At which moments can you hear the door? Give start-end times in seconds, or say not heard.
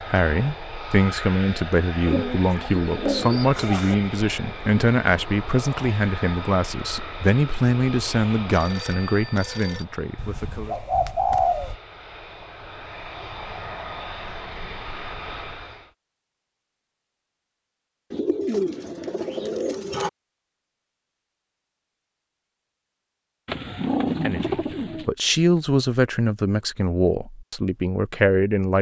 not heard.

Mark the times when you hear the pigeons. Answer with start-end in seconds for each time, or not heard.
2.0-4.0, 10.2-11.8, 18.1-20.1, 23.4-25.1.